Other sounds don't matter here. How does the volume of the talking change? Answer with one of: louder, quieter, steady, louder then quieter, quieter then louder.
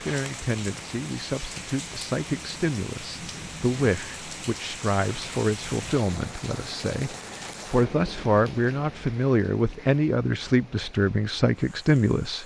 louder.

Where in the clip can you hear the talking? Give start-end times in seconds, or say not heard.
0.0-12.4.